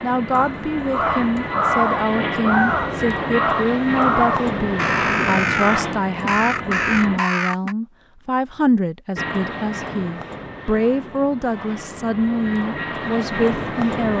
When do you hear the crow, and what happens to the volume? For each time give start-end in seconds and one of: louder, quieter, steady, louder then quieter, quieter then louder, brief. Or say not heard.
0.3-7.8 steady.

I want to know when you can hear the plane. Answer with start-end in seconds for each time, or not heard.
0.0-7.2, 9.2-14.1.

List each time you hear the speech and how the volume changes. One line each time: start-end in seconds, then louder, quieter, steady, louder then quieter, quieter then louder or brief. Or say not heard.
0.0-14.1 steady.